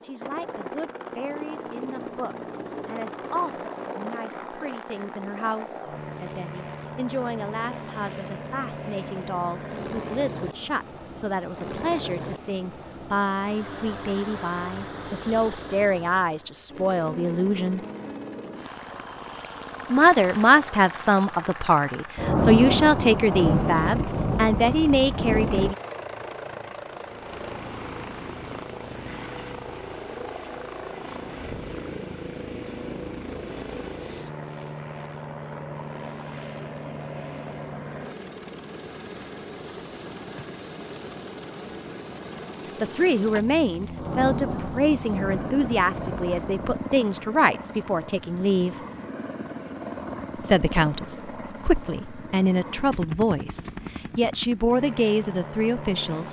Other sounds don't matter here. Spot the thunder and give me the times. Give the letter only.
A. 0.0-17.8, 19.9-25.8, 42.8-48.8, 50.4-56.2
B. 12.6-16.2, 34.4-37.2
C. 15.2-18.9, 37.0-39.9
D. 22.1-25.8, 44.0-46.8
D.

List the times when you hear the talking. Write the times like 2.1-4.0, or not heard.
0.0-17.8, 19.9-25.8, 42.8-48.8, 50.4-56.2.